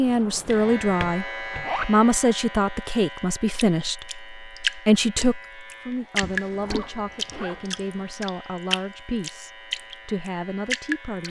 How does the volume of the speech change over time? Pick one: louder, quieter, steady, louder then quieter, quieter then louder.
quieter.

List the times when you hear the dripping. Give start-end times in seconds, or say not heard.
3.5-11.2.